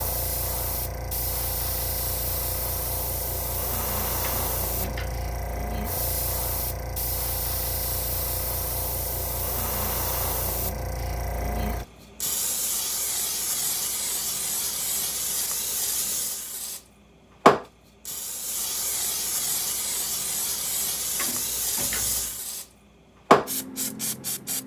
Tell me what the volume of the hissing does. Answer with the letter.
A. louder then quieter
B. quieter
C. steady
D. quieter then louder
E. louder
E.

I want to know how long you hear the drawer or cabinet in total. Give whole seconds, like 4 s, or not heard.
2 s.